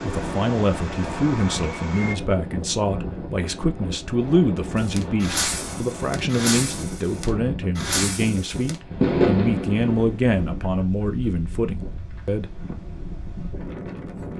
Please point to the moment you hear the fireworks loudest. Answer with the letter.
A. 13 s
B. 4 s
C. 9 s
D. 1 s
C.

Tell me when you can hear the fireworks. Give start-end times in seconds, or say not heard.
0.0-2.1, 4.8-10.5.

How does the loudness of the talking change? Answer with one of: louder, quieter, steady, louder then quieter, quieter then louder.
steady.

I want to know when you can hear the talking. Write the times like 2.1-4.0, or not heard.
0.0-12.5.